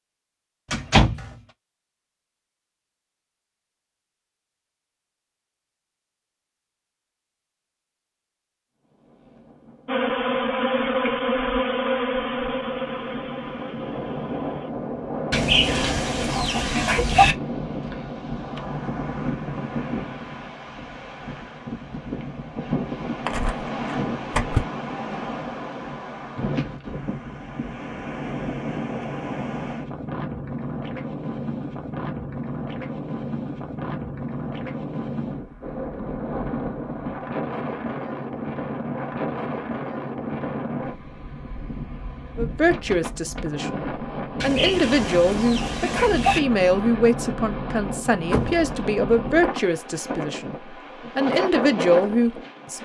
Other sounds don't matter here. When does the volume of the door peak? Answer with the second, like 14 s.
1 s.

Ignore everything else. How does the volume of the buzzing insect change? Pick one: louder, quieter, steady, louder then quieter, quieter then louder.
quieter.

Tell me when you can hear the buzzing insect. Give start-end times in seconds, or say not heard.
9.8-14.7.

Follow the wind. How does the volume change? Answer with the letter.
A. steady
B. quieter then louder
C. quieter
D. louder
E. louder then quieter
A.